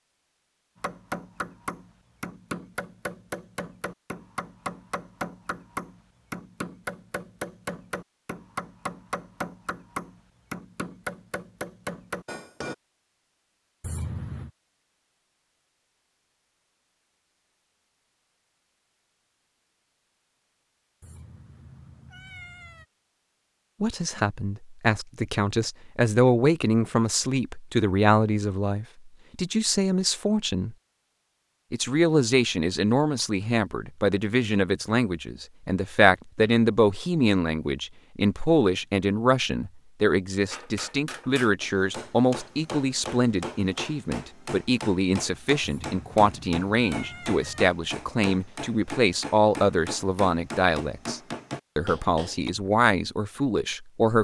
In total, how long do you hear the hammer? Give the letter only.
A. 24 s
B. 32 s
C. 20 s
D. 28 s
A.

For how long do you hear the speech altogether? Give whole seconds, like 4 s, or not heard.
29 s.